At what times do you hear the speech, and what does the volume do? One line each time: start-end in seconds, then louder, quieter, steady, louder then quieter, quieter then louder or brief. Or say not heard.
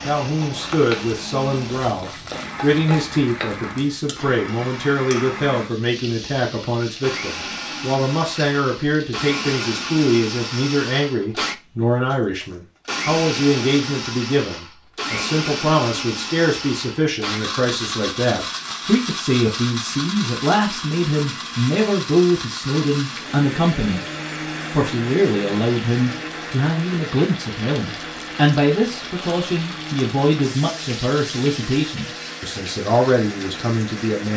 0.1-24.1 steady
24.7-34.3 steady.